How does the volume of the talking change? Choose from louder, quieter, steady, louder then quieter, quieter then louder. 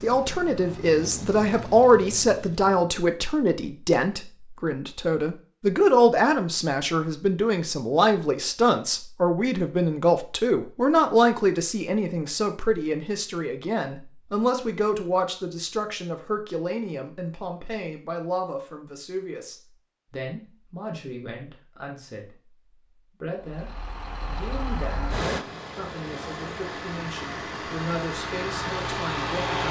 quieter.